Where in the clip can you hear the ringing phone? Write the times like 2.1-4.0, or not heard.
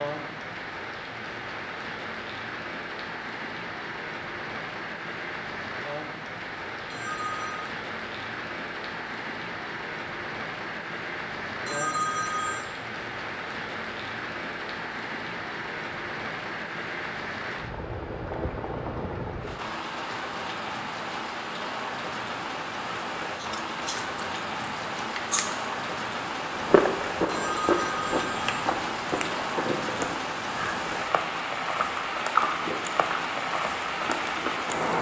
6.9-7.7, 11.7-12.7, 27.2-28.5.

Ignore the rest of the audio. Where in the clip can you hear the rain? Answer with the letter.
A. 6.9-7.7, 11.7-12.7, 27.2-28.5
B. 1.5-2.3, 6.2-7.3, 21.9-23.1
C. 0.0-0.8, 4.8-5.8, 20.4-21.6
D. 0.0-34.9
D.